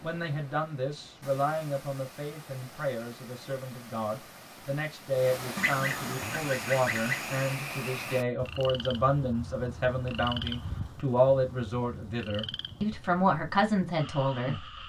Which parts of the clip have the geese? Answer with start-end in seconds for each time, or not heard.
5.5-7.4.